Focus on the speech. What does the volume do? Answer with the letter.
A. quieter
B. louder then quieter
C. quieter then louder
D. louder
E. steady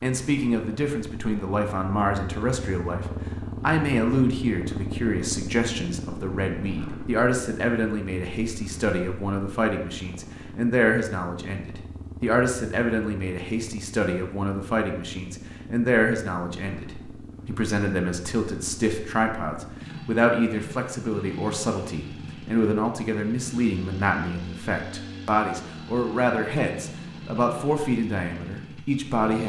E.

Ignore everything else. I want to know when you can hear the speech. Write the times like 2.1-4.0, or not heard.
0.0-29.4.